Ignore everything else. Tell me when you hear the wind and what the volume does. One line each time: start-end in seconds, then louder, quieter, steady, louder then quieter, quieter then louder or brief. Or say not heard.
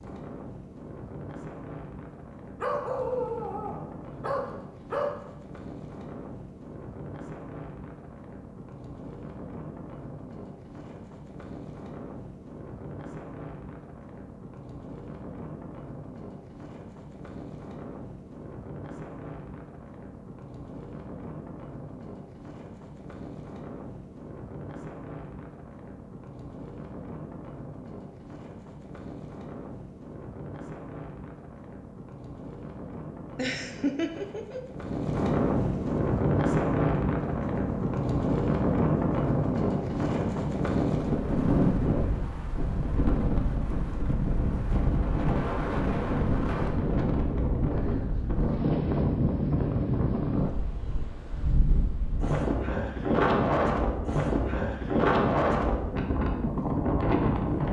0.0-57.6 louder.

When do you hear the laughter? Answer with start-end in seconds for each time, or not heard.
33.4-34.6.